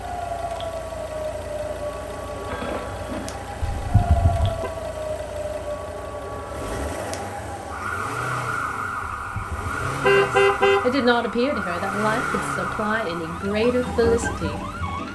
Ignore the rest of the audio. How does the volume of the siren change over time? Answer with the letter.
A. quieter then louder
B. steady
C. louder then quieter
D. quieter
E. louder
B.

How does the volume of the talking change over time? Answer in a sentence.
The loudness of the talking goes down, then up.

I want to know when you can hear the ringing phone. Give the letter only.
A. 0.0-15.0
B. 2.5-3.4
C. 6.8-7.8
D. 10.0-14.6
B.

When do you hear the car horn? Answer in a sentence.
The car horn can be heard from 3.6 to 4.7 s and from 9.2 to 10.8 s.